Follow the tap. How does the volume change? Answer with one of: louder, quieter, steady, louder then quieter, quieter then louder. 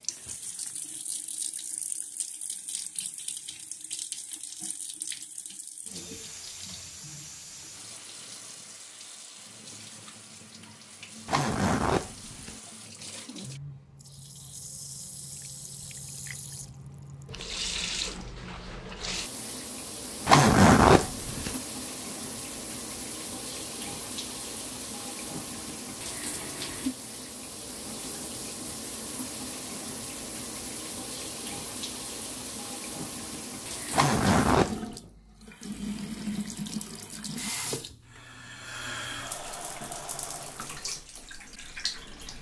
louder.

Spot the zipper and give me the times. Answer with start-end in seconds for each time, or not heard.
11.2-12.6, 20.2-21.6, 33.9-35.0.